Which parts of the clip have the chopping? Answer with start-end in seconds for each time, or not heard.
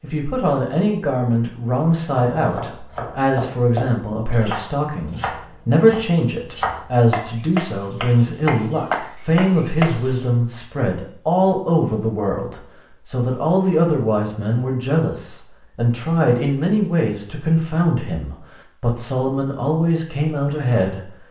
1.9-10.2.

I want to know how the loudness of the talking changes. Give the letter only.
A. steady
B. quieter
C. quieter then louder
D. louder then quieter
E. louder
A.